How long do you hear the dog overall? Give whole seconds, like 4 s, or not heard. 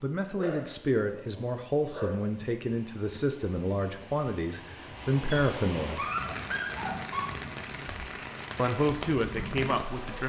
4 s.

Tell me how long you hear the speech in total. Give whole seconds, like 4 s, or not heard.
8 s.